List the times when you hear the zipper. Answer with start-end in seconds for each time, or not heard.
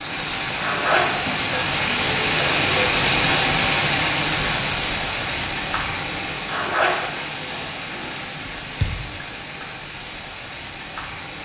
0.6-1.4, 6.5-8.2.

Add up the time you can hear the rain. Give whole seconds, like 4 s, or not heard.
11 s.